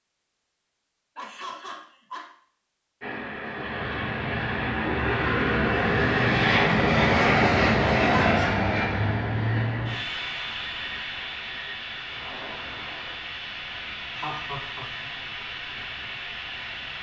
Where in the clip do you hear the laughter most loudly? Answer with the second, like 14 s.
8 s.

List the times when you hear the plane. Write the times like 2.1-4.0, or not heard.
3.0-16.9.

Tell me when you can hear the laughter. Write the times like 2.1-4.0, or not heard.
1.1-2.2, 8.0-8.6, 14.2-15.1.